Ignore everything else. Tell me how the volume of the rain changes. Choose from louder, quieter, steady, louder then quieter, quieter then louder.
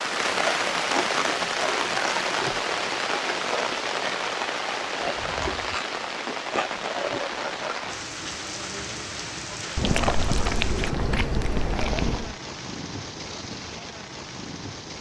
quieter.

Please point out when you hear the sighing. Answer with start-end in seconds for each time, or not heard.
not heard.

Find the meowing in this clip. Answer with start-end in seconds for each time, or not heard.
9.8-12.3.